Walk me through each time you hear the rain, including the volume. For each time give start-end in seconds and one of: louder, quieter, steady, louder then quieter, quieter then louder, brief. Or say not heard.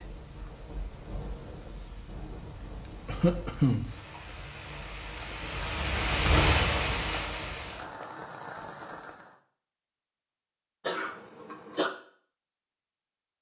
0.0-9.3 louder then quieter.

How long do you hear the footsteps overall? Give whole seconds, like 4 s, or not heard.
not heard.